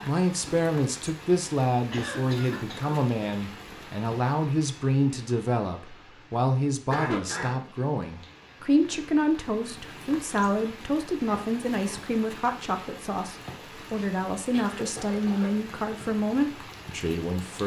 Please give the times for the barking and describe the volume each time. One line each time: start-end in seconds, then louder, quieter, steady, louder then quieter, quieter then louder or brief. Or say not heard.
not heard.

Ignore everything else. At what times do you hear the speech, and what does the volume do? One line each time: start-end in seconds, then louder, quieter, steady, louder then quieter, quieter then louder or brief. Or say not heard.
0.0-17.6 steady.